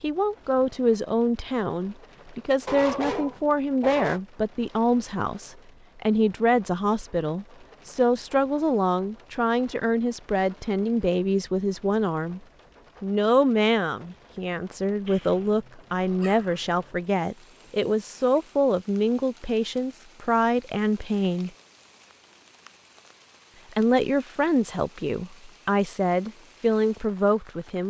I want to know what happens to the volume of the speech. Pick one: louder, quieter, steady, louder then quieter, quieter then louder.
steady.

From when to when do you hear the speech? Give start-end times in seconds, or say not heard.
0.0-12.4, 13.0-21.5, 23.7-27.8.